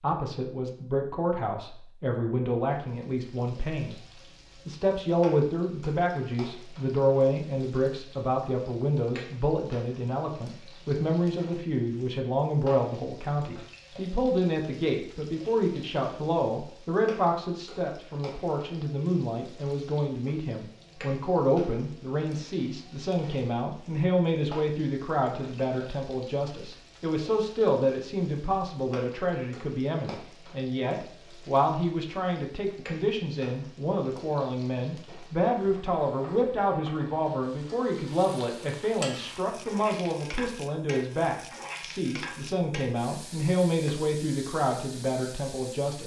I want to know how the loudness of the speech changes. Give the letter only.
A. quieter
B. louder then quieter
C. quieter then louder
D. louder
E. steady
E.